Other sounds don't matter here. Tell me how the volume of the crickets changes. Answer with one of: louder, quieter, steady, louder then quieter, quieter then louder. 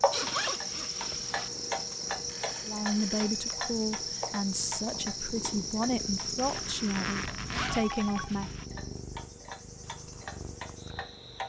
quieter.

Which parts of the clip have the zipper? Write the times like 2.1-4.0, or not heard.
0.1-1.5, 6.3-8.7.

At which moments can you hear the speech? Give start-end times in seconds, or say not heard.
2.6-8.6.